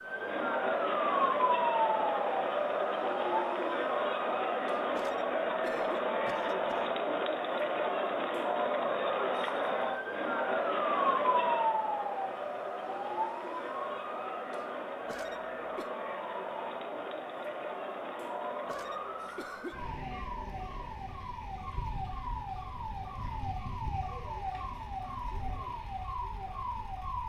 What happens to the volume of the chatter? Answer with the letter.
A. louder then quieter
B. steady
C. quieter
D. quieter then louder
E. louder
C.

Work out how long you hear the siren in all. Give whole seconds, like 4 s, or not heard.
27 s.